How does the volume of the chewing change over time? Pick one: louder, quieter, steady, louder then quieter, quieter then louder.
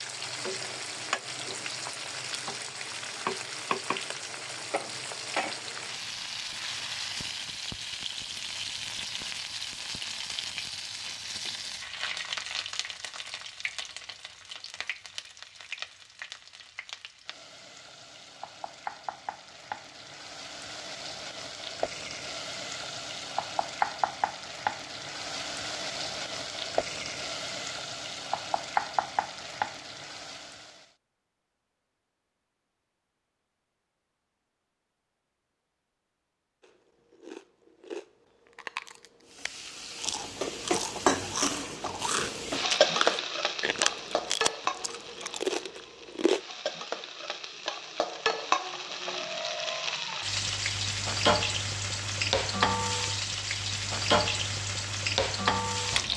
louder.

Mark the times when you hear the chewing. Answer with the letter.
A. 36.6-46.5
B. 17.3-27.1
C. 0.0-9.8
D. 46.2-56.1
A.